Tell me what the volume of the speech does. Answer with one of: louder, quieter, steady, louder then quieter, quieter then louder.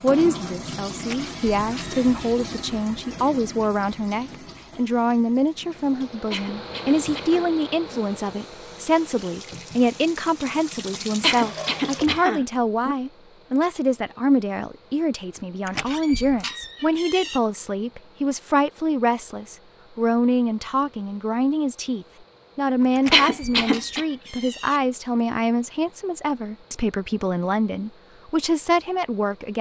steady.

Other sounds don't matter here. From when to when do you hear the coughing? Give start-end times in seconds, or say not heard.
6.3-8.0, 11.2-12.9, 23.1-24.1.